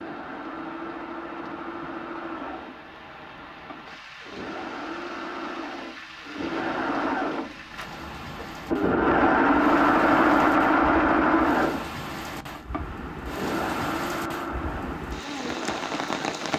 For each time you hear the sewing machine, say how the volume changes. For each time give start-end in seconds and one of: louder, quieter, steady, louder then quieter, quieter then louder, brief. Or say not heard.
0.0-16.5 louder then quieter.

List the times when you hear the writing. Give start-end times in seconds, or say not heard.
not heard.